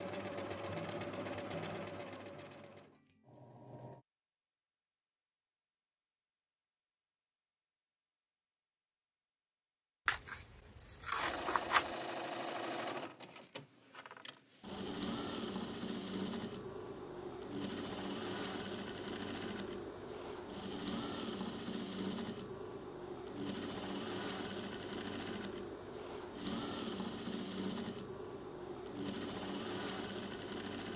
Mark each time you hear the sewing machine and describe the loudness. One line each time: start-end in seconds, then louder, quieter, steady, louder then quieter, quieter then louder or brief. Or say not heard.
0.0-4.0 quieter
11.2-30.9 steady.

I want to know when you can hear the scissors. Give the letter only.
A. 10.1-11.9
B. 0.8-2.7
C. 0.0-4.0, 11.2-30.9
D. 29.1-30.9
A.